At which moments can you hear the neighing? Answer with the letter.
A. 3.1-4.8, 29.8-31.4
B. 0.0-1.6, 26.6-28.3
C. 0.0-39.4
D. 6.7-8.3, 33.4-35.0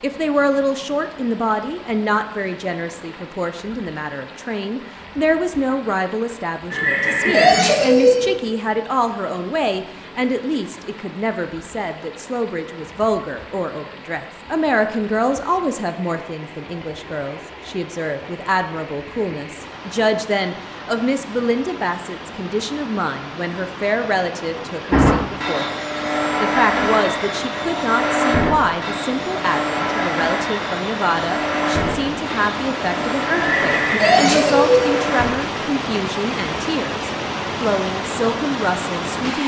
D.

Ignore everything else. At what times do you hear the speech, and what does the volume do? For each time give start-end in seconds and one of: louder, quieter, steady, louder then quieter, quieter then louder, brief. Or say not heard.
0.0-39.4 steady.